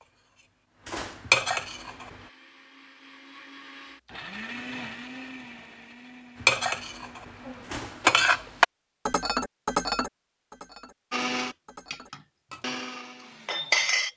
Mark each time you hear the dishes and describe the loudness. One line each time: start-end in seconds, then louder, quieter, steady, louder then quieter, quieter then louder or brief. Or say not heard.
0.0-2.1 brief
6.4-12.8 louder then quieter
13.4-14.1 brief.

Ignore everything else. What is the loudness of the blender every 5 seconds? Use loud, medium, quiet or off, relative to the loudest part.
medium, medium, loud.